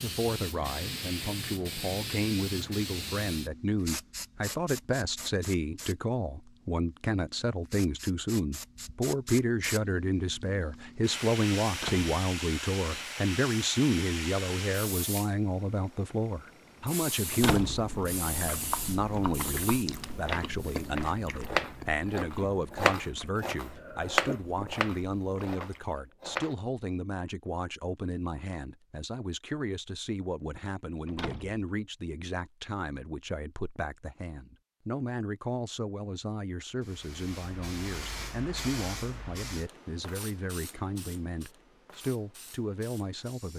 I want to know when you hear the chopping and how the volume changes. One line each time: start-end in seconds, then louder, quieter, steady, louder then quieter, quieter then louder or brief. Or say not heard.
18.7-26.6 louder then quieter.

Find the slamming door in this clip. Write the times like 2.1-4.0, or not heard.
11.7-12.1, 17.3-17.9, 31.1-31.6.